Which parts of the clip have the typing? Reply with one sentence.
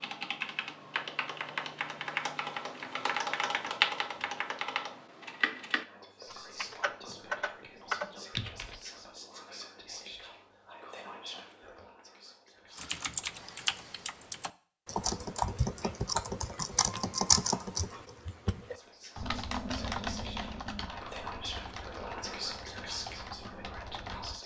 The typing can be heard from 0.0 to 8.8 s and from 12.8 to 24.4 s.